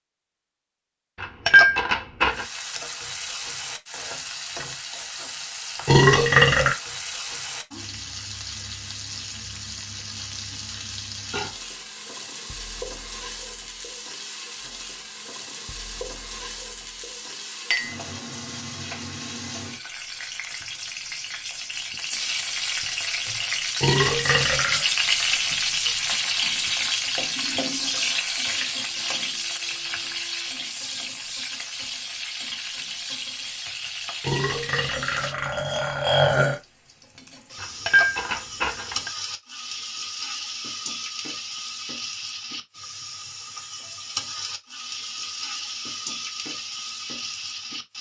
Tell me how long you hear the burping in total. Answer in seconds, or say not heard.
4 s.